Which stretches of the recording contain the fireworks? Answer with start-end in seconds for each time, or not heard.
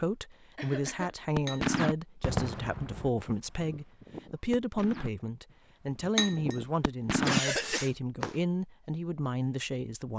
1.4-8.3.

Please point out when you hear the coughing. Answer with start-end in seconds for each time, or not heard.
0.6-1.1, 7.2-7.9.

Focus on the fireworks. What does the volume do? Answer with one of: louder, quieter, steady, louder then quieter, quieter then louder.
quieter then louder.